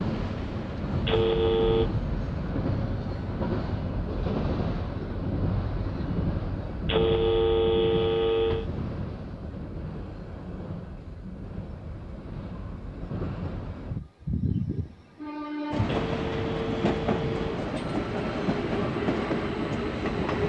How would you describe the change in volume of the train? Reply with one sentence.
The volume of the train goes down, then up.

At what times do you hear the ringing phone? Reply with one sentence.
The ringing phone can be heard from 1.1 to 1.9 s, from 6.8 to 8.7 s and from 15.8 to 17.6 s.